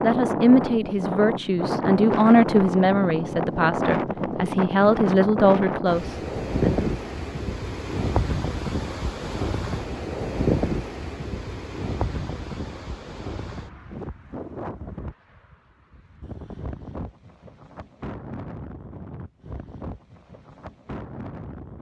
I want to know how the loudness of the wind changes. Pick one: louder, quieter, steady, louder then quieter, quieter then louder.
quieter.